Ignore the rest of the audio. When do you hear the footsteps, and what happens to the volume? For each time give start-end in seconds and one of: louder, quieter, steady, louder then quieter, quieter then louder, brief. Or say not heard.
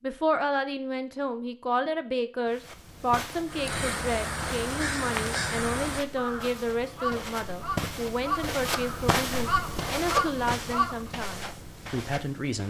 2.5-12.6 louder then quieter.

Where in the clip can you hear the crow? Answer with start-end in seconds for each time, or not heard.
3.5-11.1.